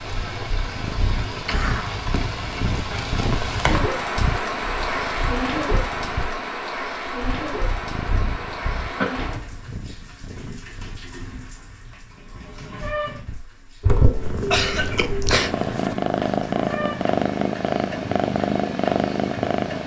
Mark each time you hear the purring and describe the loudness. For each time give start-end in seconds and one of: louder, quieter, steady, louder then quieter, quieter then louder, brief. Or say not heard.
0.1-19.8 quieter then louder.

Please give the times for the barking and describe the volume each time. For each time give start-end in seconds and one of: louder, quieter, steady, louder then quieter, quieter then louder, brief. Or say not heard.
not heard.